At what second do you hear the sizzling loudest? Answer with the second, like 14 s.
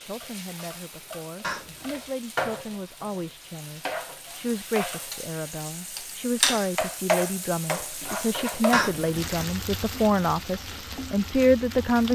7 s.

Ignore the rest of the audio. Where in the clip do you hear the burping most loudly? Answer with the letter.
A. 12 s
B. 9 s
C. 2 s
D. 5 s
B.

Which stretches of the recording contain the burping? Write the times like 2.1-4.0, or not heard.
1.4-2.0, 8.7-9.4.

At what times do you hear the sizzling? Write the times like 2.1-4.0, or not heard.
0.0-12.0.